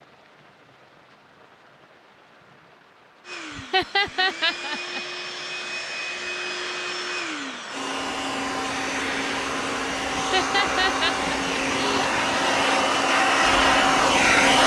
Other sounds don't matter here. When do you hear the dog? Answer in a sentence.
The dog can't be heard in this clip.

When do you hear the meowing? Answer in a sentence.
The meowing can't be heard in this clip.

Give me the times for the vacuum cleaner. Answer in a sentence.
You can hear the vacuum cleaner from 3.2 to 14.6 s.